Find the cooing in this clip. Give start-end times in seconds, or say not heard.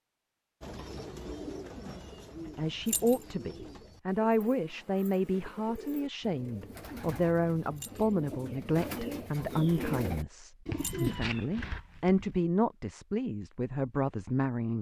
0.6-12.4.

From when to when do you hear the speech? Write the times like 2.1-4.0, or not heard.
2.5-14.7.